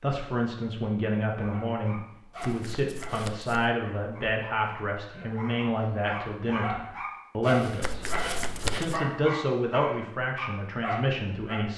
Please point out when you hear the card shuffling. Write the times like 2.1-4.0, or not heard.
2.4-3.8, 7.8-9.1.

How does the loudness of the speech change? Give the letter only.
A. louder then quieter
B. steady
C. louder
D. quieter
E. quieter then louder
B.